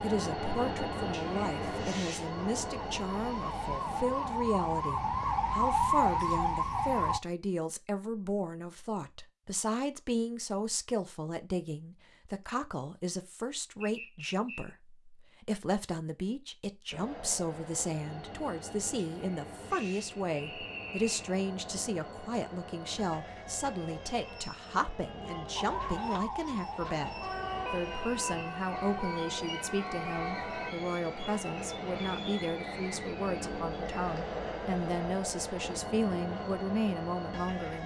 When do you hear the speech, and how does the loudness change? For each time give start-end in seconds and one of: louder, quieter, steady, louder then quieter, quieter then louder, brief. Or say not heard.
0.0-37.8 steady.